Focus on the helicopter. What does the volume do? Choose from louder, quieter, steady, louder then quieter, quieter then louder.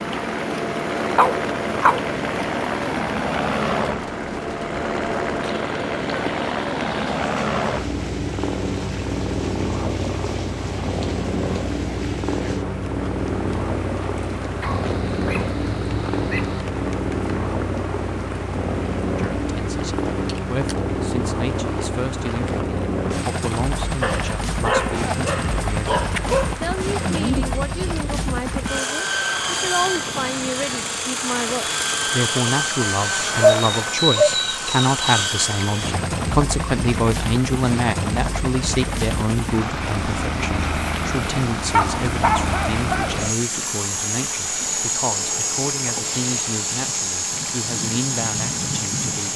steady.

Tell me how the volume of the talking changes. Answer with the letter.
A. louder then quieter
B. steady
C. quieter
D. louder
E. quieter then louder
A.